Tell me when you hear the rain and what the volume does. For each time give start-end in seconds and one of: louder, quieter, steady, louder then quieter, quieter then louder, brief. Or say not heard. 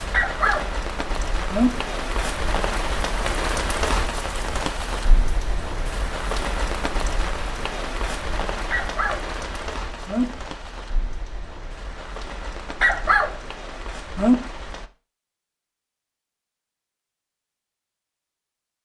0.0-14.9 quieter.